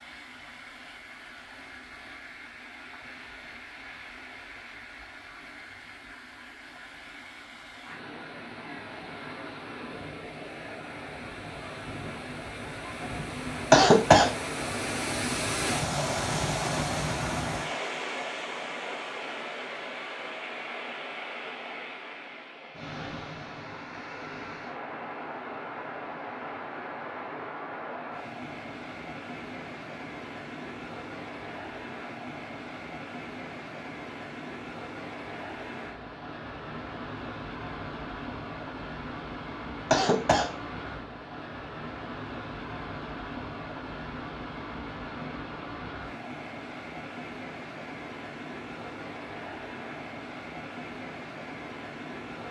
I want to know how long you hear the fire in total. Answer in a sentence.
The fire can't be heard in this clip.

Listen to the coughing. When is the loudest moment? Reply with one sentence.
The loudest moment of the coughing is at 14 seconds.